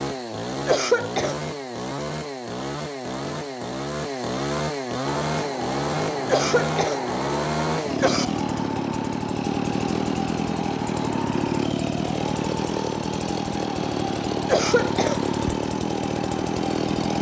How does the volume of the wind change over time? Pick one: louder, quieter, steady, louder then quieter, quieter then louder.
steady.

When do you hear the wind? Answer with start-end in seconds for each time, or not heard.
5.2-17.1.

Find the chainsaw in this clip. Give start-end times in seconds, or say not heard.
0.0-17.1.